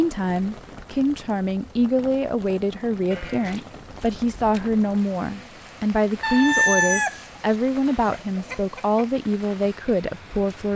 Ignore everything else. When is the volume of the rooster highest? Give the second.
7 s.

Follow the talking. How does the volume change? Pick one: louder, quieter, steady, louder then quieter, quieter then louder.
steady.